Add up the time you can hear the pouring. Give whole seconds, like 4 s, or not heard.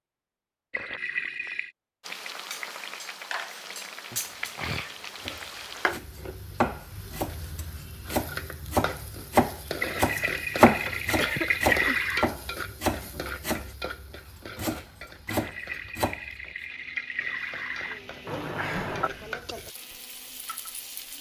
6 s.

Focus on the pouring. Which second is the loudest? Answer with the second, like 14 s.
12 s.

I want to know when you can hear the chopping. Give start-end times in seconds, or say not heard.
5.2-13.8, 14.3-16.2.